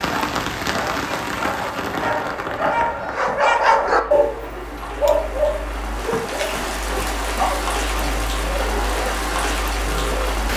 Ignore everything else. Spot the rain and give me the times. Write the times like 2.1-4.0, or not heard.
0.0-10.5.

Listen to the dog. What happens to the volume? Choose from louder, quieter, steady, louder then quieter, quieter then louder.
louder then quieter.